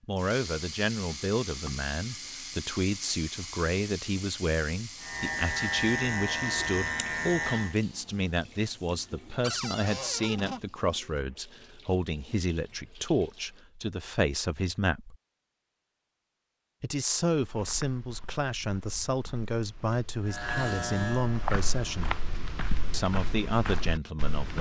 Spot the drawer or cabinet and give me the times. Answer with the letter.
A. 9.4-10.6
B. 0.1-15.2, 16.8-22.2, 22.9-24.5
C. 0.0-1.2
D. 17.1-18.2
A.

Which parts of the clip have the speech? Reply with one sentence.
You can hear the speech from 0.1 to 15.2 s, from 16.8 to 22.2 s and from 22.9 to 24.5 s.